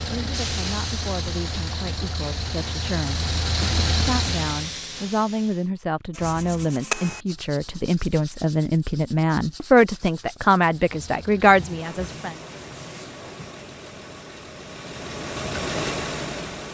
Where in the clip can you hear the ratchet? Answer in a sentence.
You can't hear the ratchet here.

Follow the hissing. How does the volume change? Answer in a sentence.
The volume of the hissing goes down, then up.